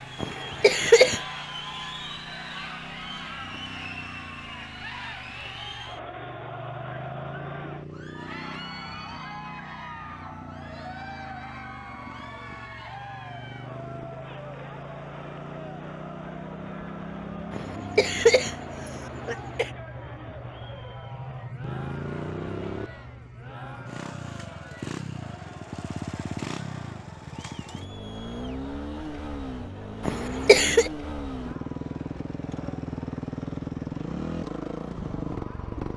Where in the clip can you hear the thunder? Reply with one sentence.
You can't hear the thunder here.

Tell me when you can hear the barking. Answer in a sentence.
You can't hear the barking here.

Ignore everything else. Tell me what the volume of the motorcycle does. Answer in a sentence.
The volume of the motorcycle goes up.